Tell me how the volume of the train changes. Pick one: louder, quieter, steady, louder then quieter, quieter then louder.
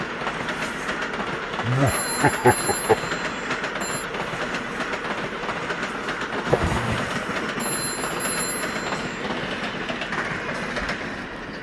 steady.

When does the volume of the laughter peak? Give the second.
2 s.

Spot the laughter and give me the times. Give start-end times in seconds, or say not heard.
1.6-3.0, 6.5-7.1.